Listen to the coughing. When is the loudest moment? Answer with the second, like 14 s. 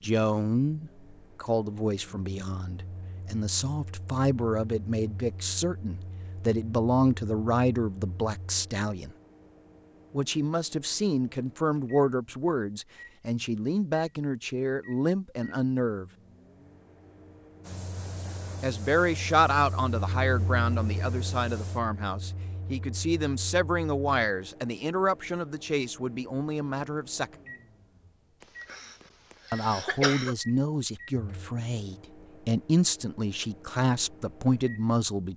30 s.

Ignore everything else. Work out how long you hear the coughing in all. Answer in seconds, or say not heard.
2 s.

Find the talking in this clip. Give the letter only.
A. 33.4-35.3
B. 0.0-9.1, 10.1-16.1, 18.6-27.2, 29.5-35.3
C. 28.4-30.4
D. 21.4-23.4
B.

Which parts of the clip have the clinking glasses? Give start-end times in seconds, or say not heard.
not heard.